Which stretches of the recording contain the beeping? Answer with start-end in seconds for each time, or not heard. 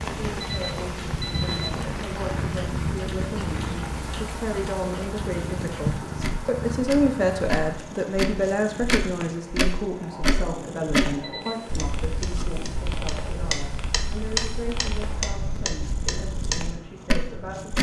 0.4-1.7, 11.2-11.7.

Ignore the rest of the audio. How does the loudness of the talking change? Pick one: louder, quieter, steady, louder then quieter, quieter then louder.
louder then quieter.